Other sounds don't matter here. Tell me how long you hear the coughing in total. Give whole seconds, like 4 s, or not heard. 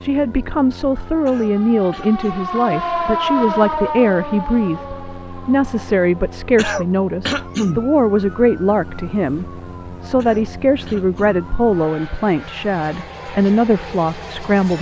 4 s.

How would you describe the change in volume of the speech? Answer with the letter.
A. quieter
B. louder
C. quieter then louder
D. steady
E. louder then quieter
D.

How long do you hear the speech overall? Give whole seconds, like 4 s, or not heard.
15 s.